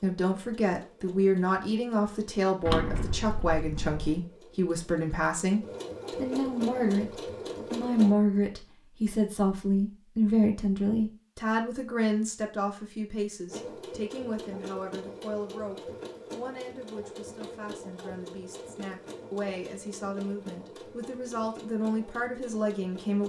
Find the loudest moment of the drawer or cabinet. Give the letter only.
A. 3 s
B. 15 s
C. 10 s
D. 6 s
A.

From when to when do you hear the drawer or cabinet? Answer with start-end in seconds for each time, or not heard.
2.6-4.2.